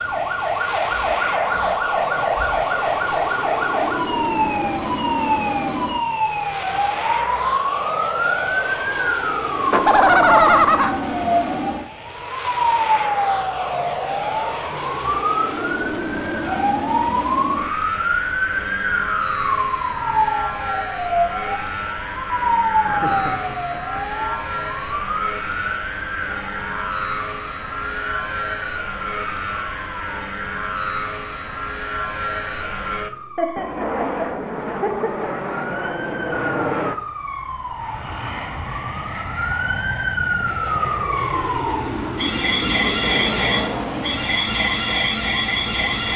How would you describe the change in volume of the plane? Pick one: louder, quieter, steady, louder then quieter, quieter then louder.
steady.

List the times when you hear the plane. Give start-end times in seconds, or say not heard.
0.0-46.1.